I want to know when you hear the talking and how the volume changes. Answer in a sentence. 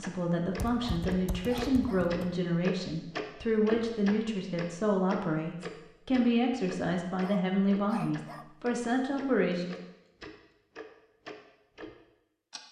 You can hear the talking from 0.0 to 9.8 s, at a steady volume.